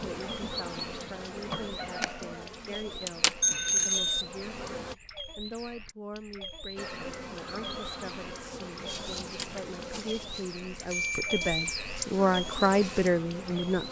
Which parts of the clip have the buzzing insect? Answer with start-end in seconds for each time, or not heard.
0.0-5.0, 6.8-13.8.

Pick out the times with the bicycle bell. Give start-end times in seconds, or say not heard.
3.4-4.2, 10.9-11.8.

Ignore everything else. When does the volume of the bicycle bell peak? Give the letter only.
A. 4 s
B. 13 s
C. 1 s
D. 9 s
A.